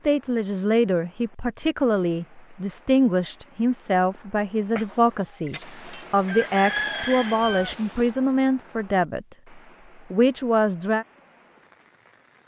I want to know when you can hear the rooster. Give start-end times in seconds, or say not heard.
4.8-8.1.